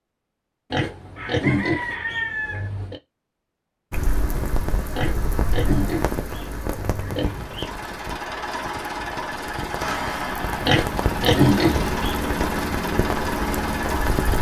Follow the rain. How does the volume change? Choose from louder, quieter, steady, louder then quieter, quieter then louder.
quieter then louder.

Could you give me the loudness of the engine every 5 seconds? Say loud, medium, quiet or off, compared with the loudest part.
off, loud, loud.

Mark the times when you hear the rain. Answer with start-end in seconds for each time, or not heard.
3.9-14.3.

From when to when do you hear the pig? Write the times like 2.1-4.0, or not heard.
0.7-3.0, 4.9-7.7, 10.7-12.2.